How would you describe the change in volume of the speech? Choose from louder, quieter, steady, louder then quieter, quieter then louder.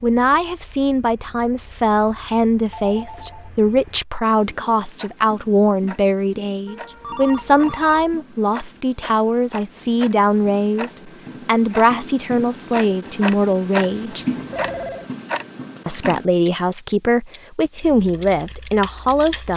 steady.